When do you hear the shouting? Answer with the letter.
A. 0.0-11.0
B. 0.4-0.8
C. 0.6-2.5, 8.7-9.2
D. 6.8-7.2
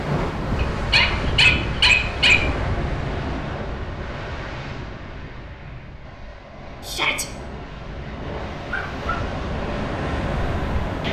D.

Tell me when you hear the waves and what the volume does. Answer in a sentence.
You can hear the waves from 0.0 to 11.0 s, getting quieter then louder.